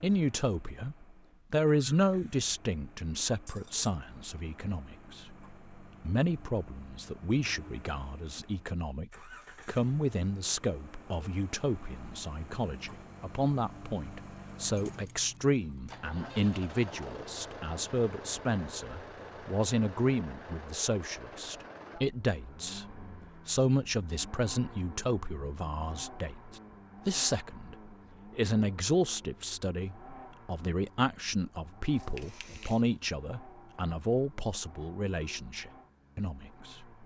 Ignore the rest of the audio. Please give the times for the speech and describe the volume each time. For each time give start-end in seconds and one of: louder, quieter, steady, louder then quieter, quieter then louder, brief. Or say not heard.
0.0-37.0 steady.